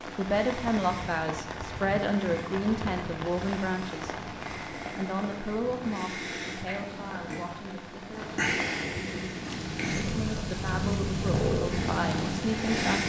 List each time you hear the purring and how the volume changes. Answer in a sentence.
The purring can be heard from 0.0 to 13.0 s, getting louder.